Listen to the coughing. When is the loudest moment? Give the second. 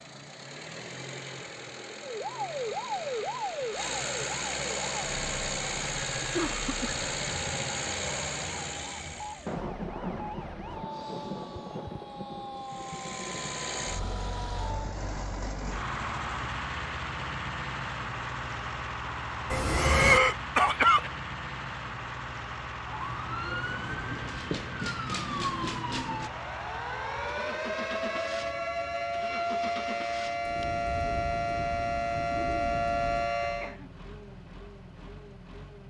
20 s.